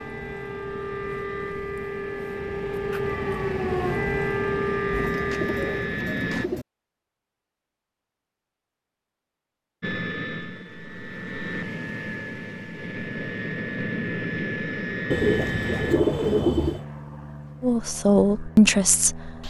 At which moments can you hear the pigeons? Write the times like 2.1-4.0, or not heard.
4.9-6.7, 15.1-16.9.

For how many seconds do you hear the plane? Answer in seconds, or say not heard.
16 s.